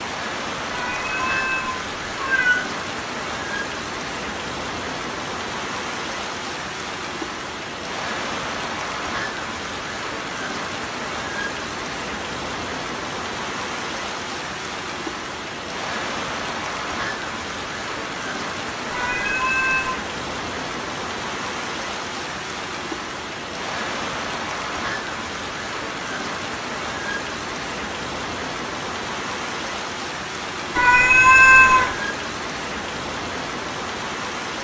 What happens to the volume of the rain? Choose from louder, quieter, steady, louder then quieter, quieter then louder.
steady.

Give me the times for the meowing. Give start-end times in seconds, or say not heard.
0.7-2.6, 18.9-20.0, 30.8-31.9.